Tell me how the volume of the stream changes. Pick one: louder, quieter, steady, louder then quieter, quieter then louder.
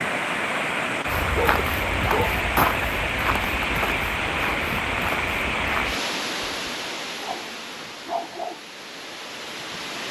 quieter.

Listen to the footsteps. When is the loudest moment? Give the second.
3 s.